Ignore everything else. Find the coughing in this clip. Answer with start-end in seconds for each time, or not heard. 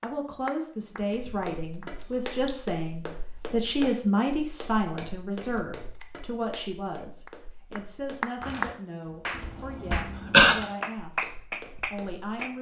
9.8-10.6.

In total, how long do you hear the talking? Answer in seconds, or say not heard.
12 s.